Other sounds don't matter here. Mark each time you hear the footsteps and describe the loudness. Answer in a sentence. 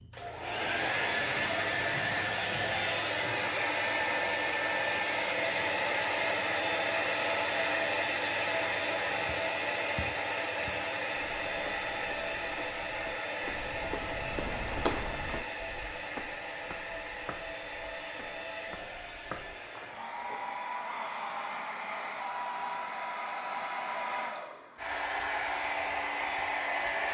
You can hear the footsteps from 9.2 to 20.6 s, getting louder then quieter.